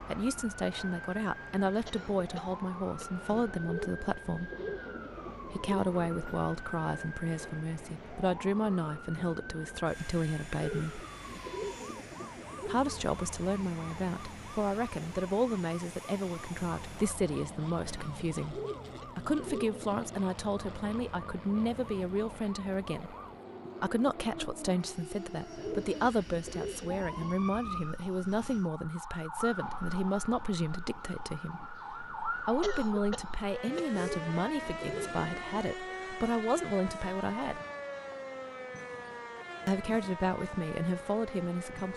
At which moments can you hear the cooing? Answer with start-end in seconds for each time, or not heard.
3.6-6.4, 10.6-12.9, 18.5-20.2, 25.6-27.4, 33.9-35.6.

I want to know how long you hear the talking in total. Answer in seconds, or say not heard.
36 s.